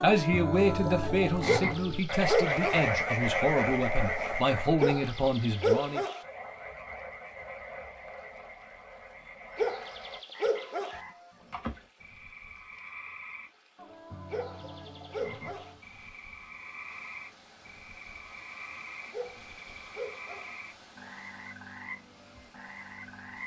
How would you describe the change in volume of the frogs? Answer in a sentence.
The volume of the frogs goes down.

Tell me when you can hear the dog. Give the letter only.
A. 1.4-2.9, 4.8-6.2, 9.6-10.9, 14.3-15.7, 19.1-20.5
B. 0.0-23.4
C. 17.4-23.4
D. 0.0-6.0
A.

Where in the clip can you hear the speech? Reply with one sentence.
The speech can be heard from 0.0 to 6.0 s.